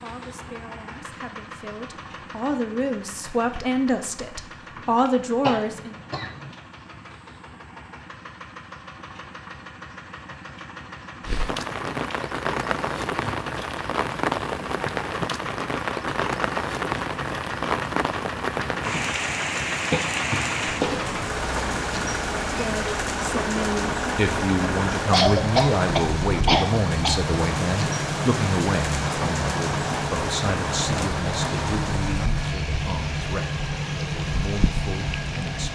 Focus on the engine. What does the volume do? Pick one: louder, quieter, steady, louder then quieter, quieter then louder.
louder.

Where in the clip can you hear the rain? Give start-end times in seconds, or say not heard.
11.2-35.7.